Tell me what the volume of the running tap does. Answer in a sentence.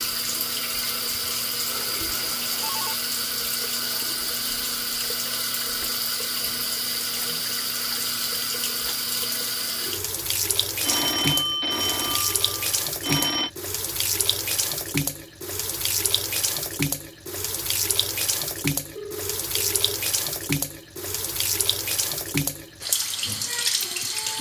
The volume of the running tap stays about the same.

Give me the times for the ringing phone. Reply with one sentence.
The ringing phone can be heard from 2.0 to 3.0 s, from 10.8 to 13.5 s and from 18.9 to 19.9 s.